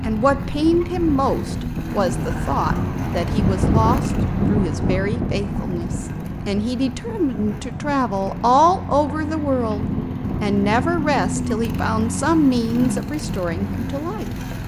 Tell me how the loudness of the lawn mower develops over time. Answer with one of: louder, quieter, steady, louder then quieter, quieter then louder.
quieter then louder.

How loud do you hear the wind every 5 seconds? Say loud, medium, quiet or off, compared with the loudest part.
loud, medium, medium.